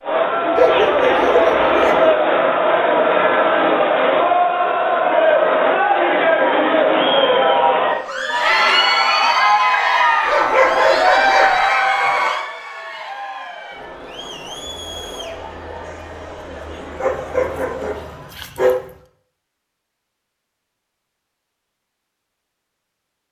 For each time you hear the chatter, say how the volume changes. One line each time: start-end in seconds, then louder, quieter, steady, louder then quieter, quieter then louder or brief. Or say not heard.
0.0-18.4 quieter.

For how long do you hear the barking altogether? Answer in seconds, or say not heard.
5 s.